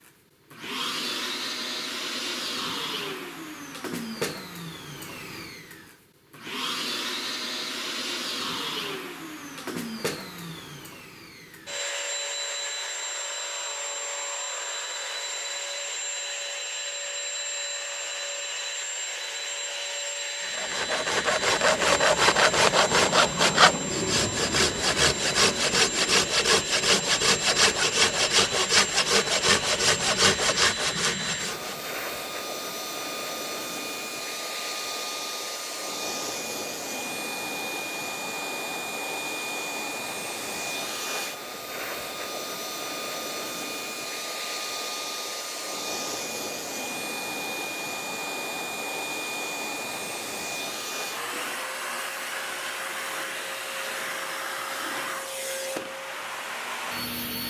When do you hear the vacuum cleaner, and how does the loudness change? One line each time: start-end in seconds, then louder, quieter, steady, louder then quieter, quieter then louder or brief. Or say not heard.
0.0-57.4 steady.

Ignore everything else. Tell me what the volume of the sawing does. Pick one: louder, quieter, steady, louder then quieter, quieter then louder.
steady.